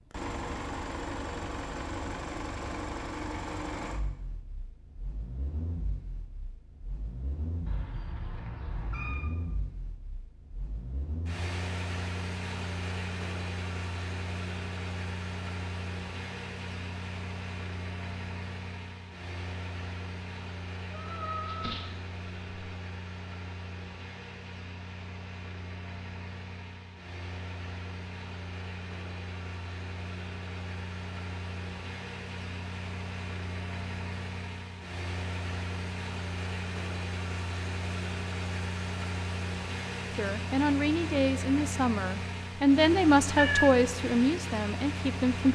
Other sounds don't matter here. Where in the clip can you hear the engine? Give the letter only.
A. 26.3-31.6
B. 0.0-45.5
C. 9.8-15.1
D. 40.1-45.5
B.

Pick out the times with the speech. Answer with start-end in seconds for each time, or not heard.
40.1-45.5.